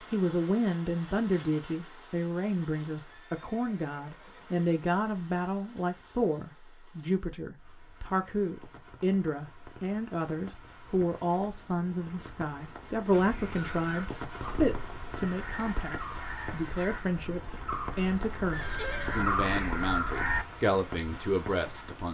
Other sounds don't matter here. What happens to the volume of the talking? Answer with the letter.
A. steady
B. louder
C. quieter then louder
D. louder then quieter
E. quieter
A.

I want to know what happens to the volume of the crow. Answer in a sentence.
The volume of the crow goes up.